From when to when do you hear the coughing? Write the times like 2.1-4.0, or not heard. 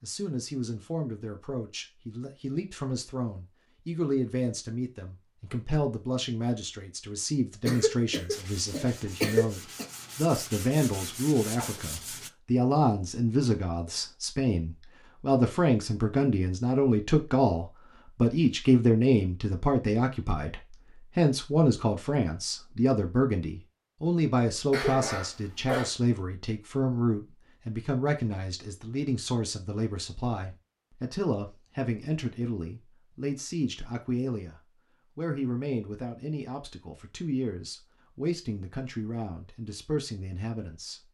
7.7-9.8, 24.7-25.9.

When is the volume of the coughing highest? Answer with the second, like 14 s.
9 s.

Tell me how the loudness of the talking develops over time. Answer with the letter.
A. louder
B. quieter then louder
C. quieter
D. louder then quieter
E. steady
D.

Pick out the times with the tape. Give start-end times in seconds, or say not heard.
not heard.